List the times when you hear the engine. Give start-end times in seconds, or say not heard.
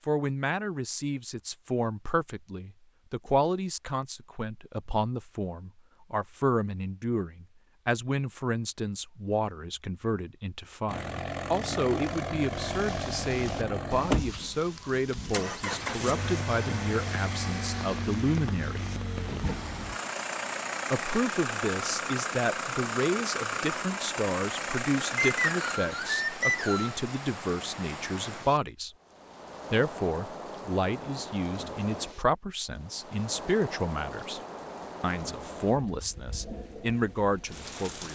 10.8-25.8.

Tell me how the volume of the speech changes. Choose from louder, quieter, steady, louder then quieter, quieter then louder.
steady.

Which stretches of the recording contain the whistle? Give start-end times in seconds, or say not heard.
25.1-26.9.